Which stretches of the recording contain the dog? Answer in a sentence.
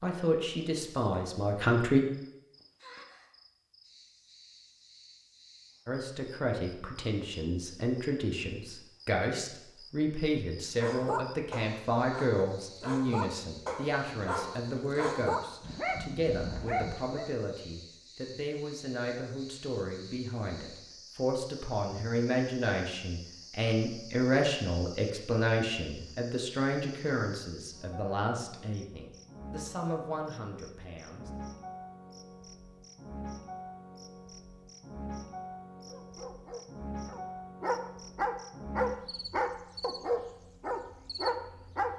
You can hear the dog from 10.8 to 17.3 s and from 35.9 to 41.9 s.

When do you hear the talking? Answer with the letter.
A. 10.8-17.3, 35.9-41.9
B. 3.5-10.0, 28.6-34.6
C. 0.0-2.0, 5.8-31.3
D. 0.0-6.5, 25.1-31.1
C.